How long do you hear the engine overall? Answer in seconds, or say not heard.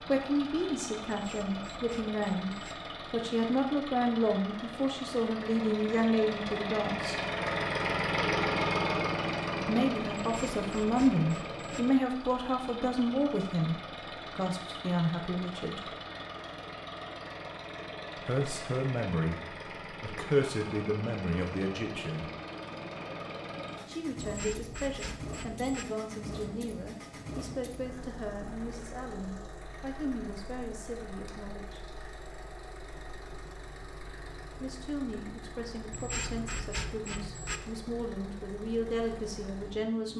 40 s.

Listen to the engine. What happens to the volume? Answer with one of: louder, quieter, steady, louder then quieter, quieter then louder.
quieter.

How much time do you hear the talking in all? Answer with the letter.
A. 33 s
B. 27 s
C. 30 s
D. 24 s
C.